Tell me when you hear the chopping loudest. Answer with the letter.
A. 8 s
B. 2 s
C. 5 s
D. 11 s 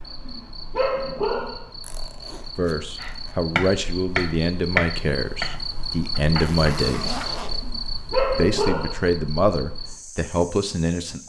C.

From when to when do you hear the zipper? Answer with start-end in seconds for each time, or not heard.
1.8-3.4, 6.3-7.7.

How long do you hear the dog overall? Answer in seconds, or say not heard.
3 s.